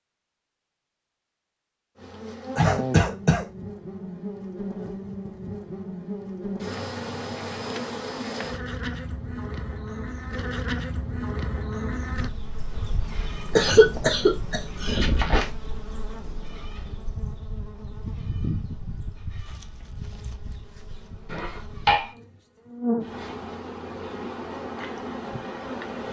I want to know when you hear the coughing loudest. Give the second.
14 s.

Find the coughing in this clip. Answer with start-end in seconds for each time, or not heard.
2.5-3.5, 13.6-15.4, 21.3-22.1.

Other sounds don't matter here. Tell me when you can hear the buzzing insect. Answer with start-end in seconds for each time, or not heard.
1.9-26.0.